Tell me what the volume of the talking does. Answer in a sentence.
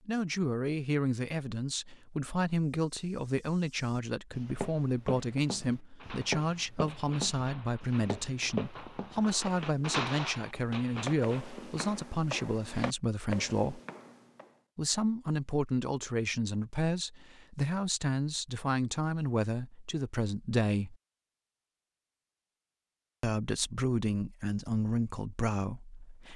The loudness of the talking stays about the same.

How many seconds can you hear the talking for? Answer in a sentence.
You can hear the talking for 23 seconds altogether.